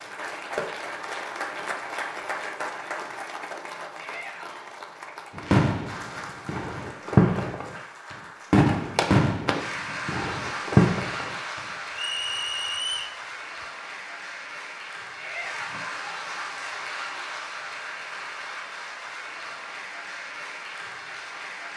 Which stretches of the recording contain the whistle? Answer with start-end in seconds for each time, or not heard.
11.9-13.2.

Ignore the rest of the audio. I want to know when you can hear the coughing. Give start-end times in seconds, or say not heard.
not heard.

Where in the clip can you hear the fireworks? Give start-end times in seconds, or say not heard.
5.3-11.6.